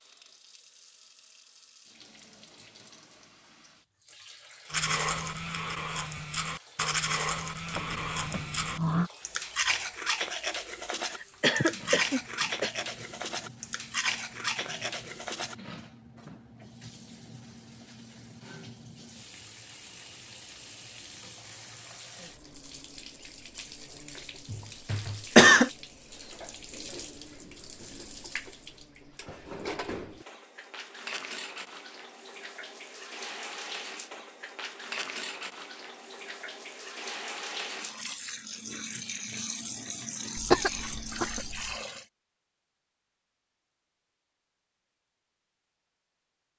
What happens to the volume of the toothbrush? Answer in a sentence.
The loudness of the toothbrush stays about the same.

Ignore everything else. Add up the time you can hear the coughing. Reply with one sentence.
You can hear the coughing for 4 seconds altogether.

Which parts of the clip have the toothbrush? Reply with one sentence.
You can hear the toothbrush from 4.7 to 15.6 s.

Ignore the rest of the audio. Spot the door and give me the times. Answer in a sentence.
You can hear the door from 7.7 to 9.1 s.